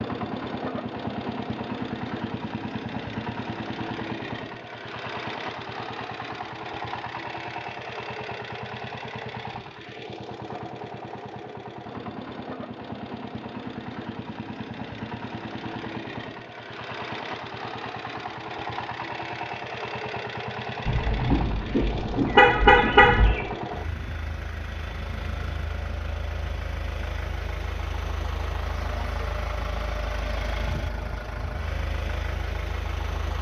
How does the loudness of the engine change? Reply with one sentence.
The volume of the engine stays about the same.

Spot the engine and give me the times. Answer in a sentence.
The engine can be heard from 0.0 to 33.3 s.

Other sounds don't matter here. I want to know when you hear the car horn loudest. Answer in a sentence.
The volume of the car horn peaks at 23 seconds.